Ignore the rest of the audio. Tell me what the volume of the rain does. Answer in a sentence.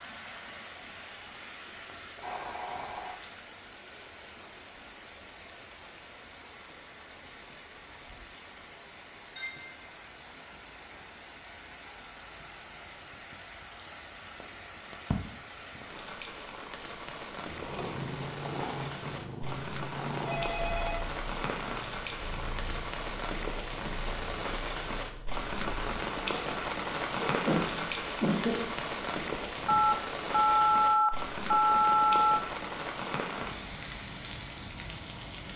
The loudness of the rain goes up.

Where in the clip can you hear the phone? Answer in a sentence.
You can hear the phone from 2.1 to 3.2 s, from 20.2 to 21.0 s and from 29.6 to 32.4 s.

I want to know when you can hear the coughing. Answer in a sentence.
The coughing can be heard from 9.3 to 9.8 s and from 27.2 to 28.6 s.